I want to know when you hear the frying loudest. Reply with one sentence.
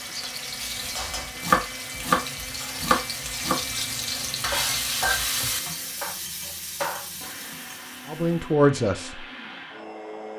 The volume of the frying peaks at 5 seconds.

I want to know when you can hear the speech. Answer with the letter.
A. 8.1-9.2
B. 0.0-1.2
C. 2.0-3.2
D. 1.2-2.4
A.